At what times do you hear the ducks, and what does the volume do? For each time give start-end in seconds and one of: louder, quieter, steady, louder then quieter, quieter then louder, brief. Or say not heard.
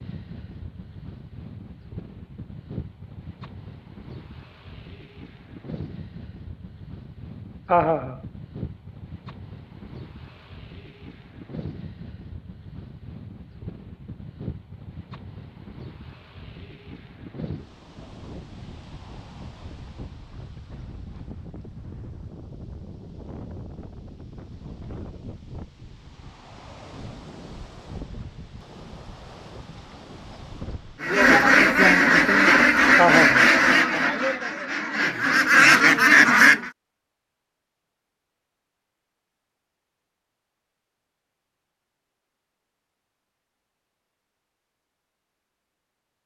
31.0-36.7 quieter then louder.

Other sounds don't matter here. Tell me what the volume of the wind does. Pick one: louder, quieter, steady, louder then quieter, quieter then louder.
steady.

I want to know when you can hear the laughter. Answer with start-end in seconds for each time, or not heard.
7.7-8.2, 33.0-33.5.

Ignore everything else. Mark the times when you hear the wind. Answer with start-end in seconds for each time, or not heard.
0.0-31.0.